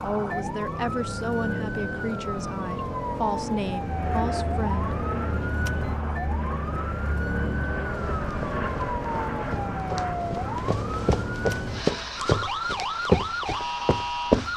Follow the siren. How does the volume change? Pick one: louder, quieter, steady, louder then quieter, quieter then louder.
steady.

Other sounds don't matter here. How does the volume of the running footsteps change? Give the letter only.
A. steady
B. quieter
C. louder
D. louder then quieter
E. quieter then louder
C.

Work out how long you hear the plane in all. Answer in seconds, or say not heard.
11 s.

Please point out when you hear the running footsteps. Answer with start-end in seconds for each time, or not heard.
7.9-14.5.